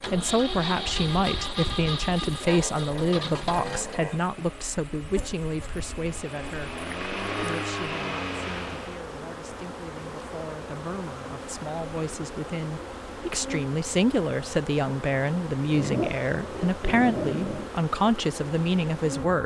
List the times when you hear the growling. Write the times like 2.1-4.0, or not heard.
2.4-4.2, 6.8-7.7, 15.7-17.7.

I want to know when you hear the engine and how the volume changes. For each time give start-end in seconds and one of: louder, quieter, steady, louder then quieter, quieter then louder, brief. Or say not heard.
0.0-9.0 quieter then louder.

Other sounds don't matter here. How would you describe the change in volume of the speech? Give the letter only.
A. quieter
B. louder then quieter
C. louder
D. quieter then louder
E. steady
D.